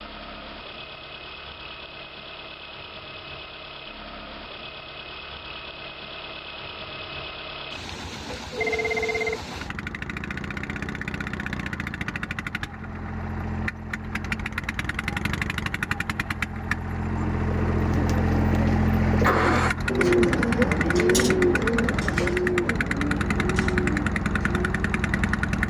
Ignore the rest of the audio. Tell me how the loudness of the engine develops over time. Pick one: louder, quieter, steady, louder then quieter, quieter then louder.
louder.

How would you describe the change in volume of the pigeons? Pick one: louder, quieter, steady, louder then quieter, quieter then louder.
louder then quieter.